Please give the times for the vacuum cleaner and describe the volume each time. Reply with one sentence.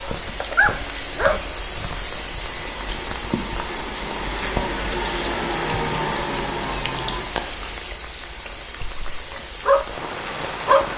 You can hear the vacuum cleaner from 2.4 to 7.3 s, getting louder.